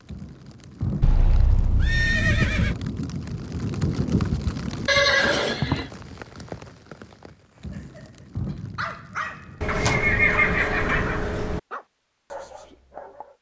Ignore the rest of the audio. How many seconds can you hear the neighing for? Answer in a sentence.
You can hear the neighing for 5 seconds altogether.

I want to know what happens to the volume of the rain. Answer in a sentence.
The loudness of the rain goes up, then down.